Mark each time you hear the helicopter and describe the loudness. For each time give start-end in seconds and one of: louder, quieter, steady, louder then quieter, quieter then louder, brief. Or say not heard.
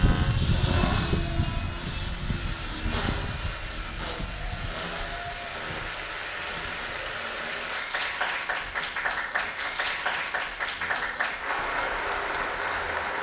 0.0-13.1 quieter.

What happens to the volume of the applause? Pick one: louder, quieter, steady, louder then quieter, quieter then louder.
louder.